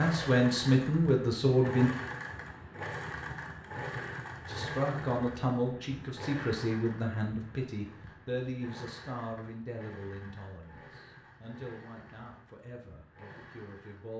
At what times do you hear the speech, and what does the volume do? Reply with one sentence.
The speech can be heard briefly from 0.0 to 1.9 s; and from 4.5 to 14.1 s, getting quieter.